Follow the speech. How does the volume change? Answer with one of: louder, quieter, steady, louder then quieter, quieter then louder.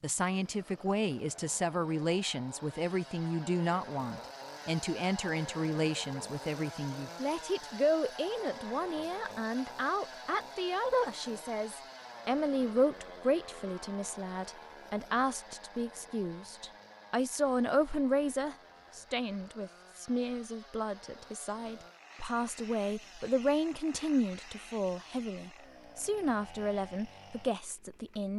steady.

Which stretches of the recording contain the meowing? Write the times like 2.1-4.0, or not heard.
not heard.